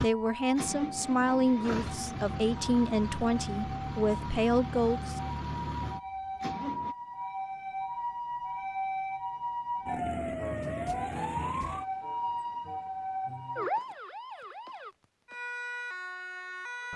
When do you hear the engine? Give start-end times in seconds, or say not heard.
0.0-7.0.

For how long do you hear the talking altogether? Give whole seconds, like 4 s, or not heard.
5 s.